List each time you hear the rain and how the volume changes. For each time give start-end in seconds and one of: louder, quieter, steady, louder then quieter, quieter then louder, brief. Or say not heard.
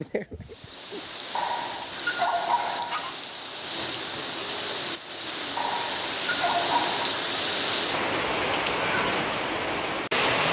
0.0-10.4 louder.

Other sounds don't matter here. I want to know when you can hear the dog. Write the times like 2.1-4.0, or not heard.
1.4-3.1, 5.5-7.2.